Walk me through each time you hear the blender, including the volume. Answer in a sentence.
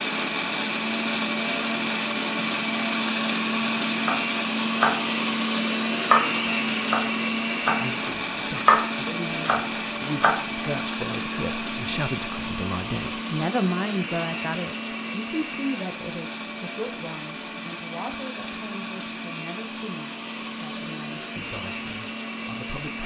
You can hear the blender from 0.0 to 23.0 s, getting quieter.